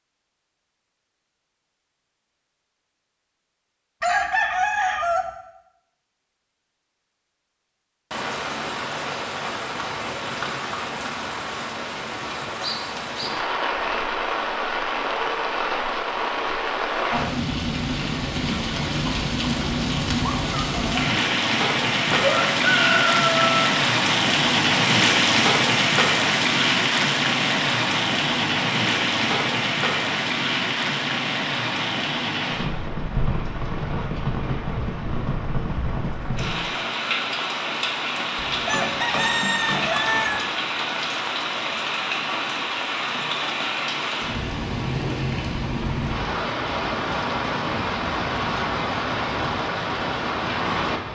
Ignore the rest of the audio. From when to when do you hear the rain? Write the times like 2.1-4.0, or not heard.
8.1-51.1.